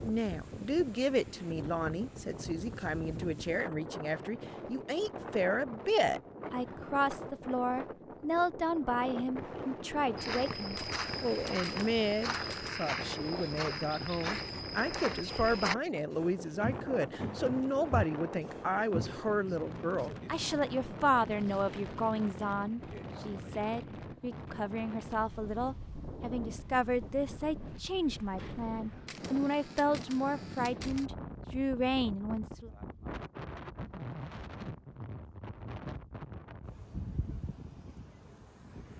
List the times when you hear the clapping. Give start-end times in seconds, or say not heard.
not heard.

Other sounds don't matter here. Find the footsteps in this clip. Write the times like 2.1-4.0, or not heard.
10.2-19.2.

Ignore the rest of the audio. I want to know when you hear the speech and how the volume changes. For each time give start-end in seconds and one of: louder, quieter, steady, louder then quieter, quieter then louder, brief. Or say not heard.
0.0-32.7 steady.